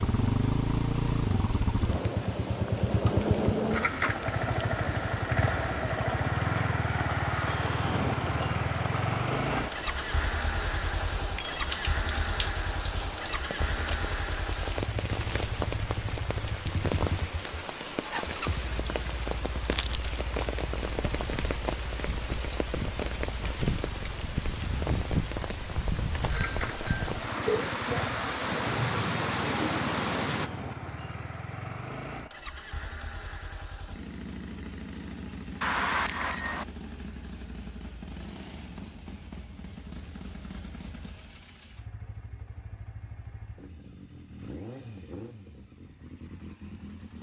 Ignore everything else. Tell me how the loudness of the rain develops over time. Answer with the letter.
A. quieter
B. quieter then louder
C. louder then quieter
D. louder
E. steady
D.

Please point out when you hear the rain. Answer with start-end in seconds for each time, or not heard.
0.0-30.5.